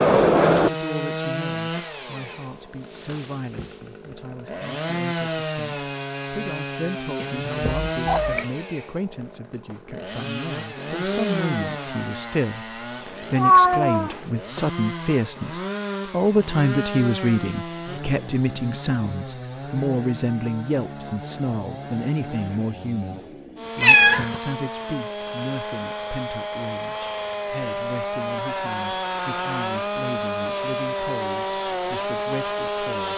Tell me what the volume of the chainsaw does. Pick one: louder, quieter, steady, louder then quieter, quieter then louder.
quieter then louder.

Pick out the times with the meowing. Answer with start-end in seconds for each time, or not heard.
7.2-8.4, 13.3-14.3, 23.8-24.4.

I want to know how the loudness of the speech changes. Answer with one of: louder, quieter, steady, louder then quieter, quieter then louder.
louder then quieter.